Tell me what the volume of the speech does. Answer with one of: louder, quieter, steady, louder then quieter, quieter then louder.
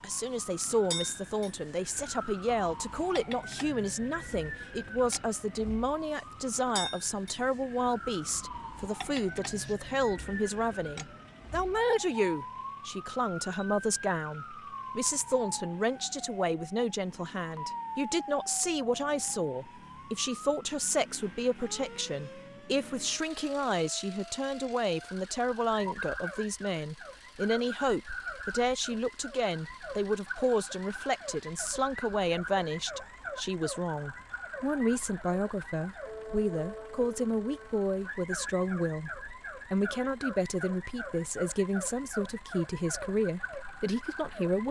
steady.